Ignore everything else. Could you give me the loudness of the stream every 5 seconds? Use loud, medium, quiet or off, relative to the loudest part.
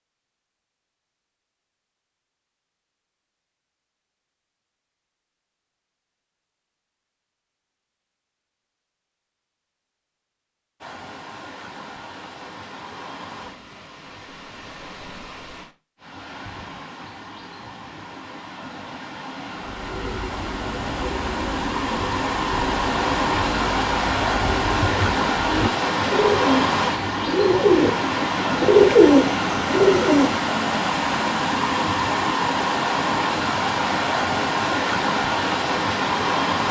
off, off, quiet, quiet, loud, loud, loud, loud.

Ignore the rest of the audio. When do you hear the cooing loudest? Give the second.
29 s.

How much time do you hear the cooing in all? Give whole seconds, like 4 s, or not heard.
11 s.